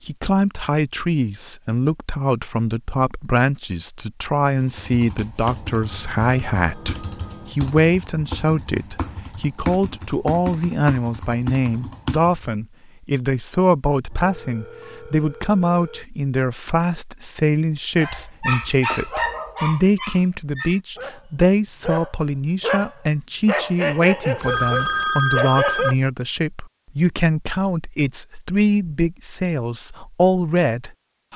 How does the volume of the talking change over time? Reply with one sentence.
The volume of the talking stays about the same.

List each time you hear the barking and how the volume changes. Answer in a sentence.
You can hear the barking from 17.9 to 25.9 s, getting quieter then louder.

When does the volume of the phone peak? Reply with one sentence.
The loudest moment of the phone is at 25 seconds.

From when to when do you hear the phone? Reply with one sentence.
You can hear the phone from 5.8 to 7.5 s, from 14.1 to 16.1 s and from 24.4 to 25.9 s.